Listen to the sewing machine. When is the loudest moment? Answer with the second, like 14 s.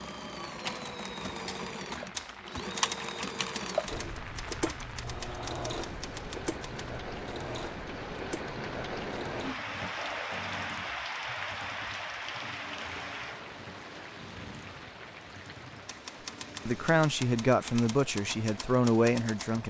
3 s.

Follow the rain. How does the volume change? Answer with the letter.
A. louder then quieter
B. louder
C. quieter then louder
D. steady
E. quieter
A.